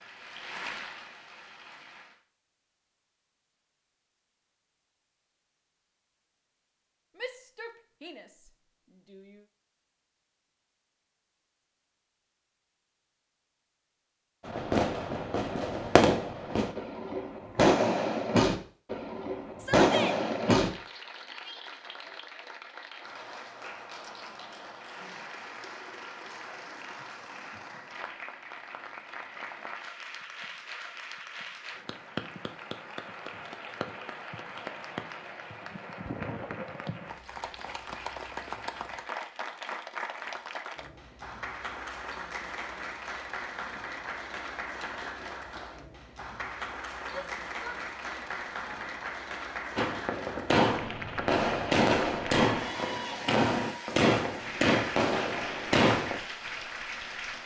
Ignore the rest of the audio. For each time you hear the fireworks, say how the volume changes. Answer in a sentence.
You can hear the fireworks from 14.4 to 20.7 s, getting louder; and from 49.8 to 56.2 s, at a steady volume.